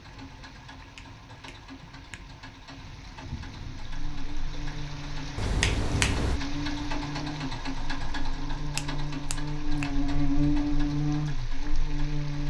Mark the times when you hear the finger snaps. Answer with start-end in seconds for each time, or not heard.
0.9-2.2, 5.3-6.4, 8.8-10.0.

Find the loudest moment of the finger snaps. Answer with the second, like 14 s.
6 s.